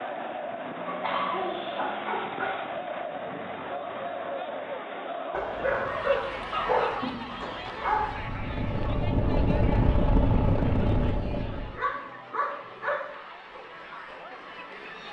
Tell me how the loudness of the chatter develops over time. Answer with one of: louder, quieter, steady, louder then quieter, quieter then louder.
quieter.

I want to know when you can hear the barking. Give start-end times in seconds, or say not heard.
0.8-2.5, 5.3-8.2, 11.5-13.1.